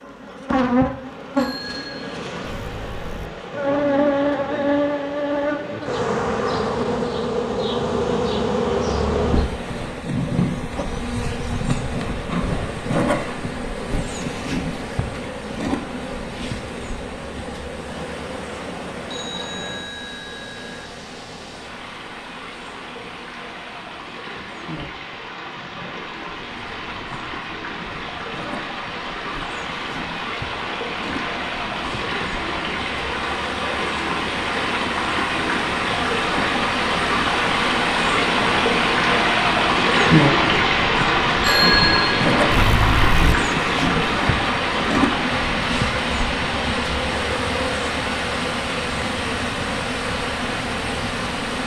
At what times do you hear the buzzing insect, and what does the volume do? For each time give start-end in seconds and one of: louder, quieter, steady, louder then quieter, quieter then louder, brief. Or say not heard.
0.0-51.6 quieter then louder.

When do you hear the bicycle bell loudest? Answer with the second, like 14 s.
42 s.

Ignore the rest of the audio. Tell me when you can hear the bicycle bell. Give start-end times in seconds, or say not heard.
1.4-3.3, 19.1-20.9, 41.4-43.4.